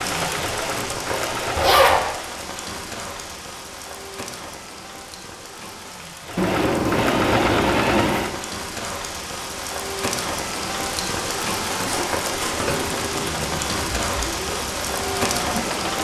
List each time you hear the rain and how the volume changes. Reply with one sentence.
You can hear the rain from 0.0 to 15.9 s, getting quieter then louder.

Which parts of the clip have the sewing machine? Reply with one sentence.
You can hear the sewing machine from 0.0 to 1.8 s, from 6.2 to 8.4 s and from 12.3 to 15.9 s.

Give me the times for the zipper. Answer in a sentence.
The zipper can be heard from 1.6 to 2.0 s, from 6.3 to 8.3 s and from 11.7 to 12.7 s.